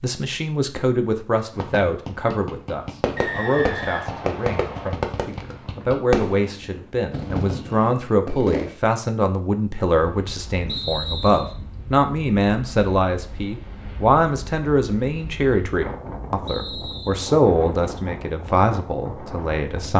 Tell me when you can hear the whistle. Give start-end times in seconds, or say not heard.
3.1-4.9, 10.7-11.6, 16.4-17.2.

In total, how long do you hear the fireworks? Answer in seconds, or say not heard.
7 s.